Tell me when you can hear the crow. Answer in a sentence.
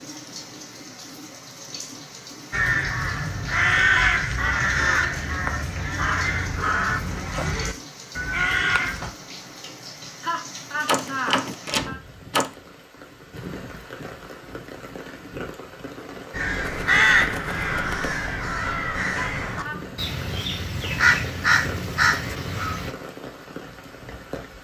The crow can be heard from 2.5 to 9.1 s and from 16.3 to 22.9 s.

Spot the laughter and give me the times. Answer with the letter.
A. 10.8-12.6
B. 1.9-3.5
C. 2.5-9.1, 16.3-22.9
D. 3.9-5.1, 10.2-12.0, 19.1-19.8
D.